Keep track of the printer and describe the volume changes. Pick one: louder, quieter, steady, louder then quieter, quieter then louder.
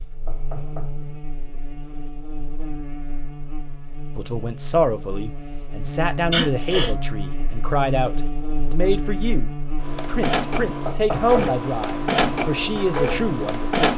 steady.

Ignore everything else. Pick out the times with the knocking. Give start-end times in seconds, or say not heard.
0.2-1.1, 10.8-11.6.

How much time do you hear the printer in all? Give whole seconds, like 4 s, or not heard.
4 s.